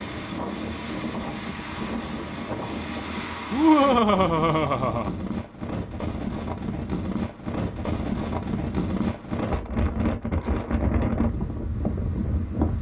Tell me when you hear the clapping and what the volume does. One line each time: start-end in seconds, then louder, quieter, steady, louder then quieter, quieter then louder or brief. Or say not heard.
not heard.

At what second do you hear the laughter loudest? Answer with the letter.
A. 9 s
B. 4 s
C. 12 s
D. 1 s
B.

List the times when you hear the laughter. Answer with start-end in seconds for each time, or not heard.
3.5-5.1.